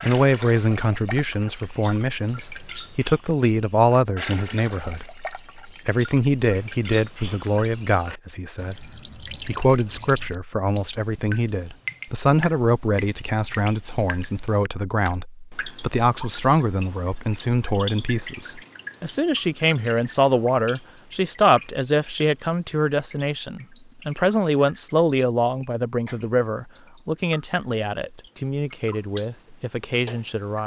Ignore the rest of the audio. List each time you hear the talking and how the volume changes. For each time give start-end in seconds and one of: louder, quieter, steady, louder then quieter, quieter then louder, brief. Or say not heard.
0.0-30.6 steady.